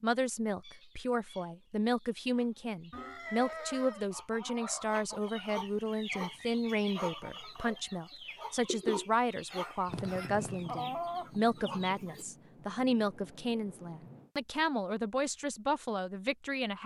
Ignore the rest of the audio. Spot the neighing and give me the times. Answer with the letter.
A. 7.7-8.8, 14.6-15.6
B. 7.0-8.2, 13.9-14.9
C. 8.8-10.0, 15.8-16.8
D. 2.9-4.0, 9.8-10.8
D.